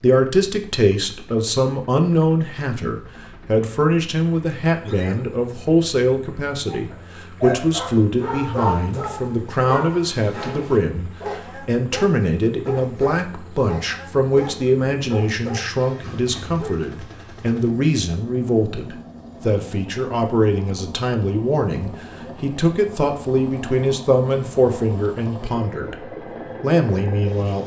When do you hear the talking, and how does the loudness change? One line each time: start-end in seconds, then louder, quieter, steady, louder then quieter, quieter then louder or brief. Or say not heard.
0.0-27.6 steady.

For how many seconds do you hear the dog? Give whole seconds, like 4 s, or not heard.
10 s.